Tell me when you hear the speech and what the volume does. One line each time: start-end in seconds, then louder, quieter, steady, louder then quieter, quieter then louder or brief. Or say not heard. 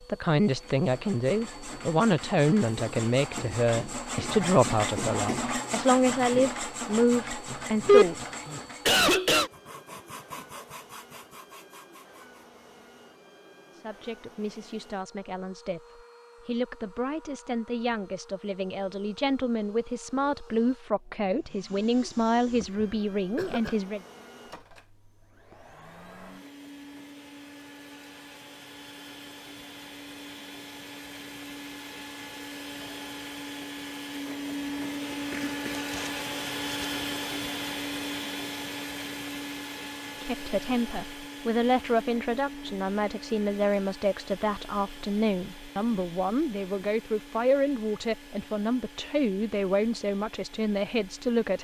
0.1-8.2 steady
13.8-24.0 louder
40.2-51.6 steady.